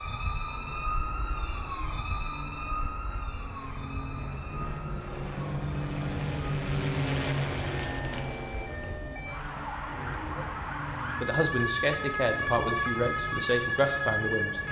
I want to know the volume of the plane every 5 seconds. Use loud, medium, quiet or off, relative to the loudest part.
medium, loud, medium.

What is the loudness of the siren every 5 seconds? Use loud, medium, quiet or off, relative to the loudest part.
medium, medium, loud.